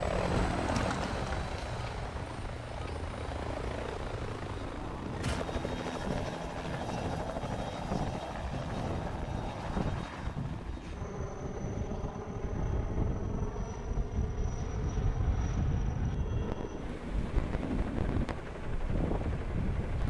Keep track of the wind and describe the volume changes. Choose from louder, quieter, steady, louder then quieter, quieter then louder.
louder.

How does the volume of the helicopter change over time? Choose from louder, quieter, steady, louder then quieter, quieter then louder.
quieter.